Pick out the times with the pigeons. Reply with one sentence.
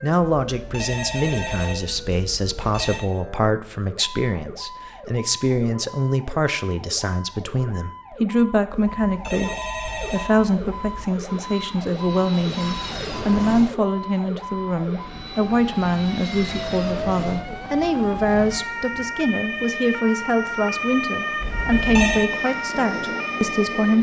The pigeons can't be heard in this clip.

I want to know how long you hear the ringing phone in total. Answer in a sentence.
The ringing phone can be heard for 6 seconds in total.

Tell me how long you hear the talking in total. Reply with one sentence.
You can hear the talking for 24 seconds altogether.